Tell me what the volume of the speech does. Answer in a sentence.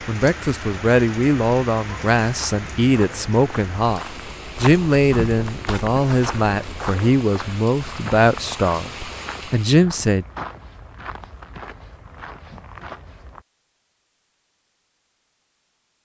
The loudness of the speech stays about the same.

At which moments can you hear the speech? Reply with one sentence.
You can hear the speech from 0.1 to 4.0 s and from 4.6 to 10.2 s.